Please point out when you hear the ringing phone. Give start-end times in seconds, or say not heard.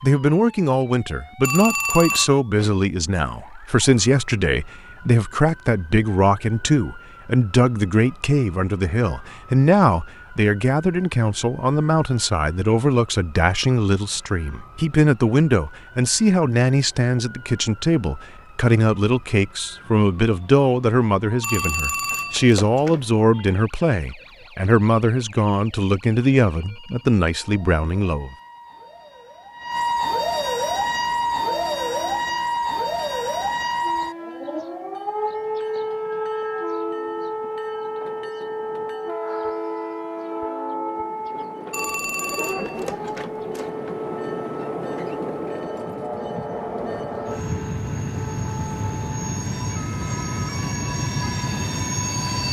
1.4-2.3, 21.4-23.1, 41.7-43.7.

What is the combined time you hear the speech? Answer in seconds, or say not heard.
28 s.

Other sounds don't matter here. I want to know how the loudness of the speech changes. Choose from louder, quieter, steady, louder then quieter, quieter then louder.
steady.